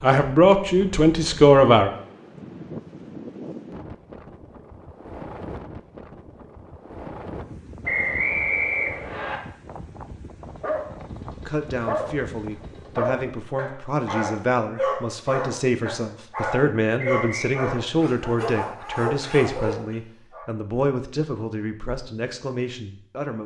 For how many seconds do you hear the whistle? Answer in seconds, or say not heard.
2 s.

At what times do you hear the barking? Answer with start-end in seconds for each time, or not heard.
10.6-12.1, 12.8-20.4.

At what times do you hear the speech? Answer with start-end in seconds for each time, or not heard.
0.0-1.9, 11.3-23.4.